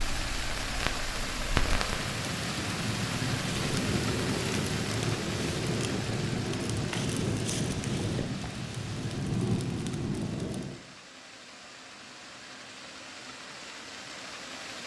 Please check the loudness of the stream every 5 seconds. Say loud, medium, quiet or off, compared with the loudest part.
loud, medium, medium.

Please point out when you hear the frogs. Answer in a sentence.
The frogs can't be heard in this clip.